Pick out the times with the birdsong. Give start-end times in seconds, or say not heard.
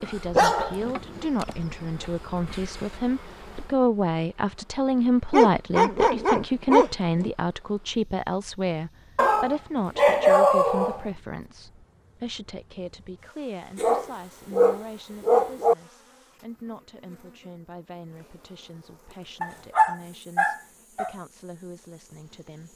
not heard.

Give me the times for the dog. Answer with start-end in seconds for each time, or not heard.
0.3-1.2, 5.3-7.3, 9.2-11.1, 13.8-15.8, 19.4-21.1.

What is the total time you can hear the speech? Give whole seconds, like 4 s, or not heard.
23 s.